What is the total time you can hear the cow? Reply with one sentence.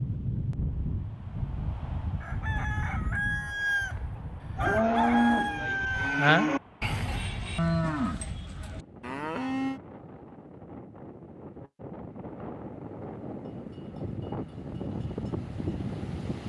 You can hear the cow for 5 seconds altogether.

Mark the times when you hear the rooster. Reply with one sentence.
The rooster can be heard from 2.2 to 6.3 s.